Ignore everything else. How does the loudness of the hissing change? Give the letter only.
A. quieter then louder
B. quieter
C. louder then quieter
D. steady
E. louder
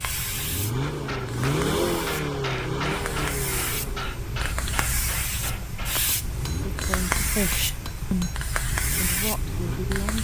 E.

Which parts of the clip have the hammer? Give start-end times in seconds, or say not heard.
0.8-8.4.